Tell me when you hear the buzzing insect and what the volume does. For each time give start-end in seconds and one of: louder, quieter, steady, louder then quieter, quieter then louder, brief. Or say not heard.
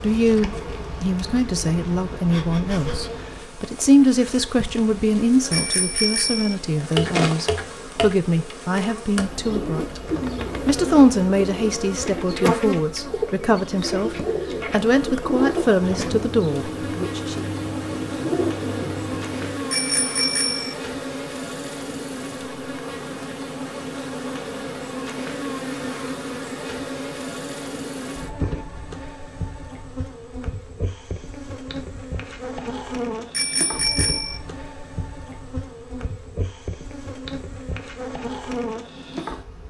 0.0-39.6 steady.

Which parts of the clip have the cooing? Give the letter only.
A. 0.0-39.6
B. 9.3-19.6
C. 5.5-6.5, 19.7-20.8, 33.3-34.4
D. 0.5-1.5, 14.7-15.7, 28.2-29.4
B.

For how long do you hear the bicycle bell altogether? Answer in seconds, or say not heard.
3 s.